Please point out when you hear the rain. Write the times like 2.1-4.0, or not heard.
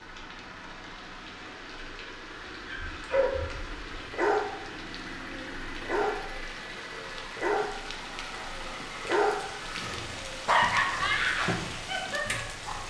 0.0-12.8.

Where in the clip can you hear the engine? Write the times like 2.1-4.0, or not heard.
0.0-12.8.